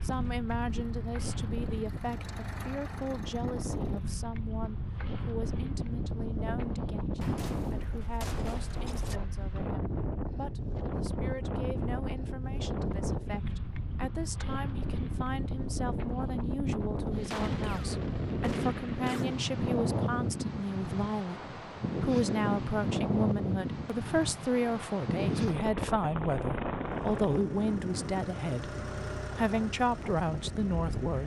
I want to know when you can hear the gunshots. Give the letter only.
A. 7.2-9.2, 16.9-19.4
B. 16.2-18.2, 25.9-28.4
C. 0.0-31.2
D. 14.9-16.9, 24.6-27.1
A.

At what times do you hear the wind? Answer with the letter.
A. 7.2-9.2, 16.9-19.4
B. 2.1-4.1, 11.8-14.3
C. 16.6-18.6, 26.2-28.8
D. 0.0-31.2
D.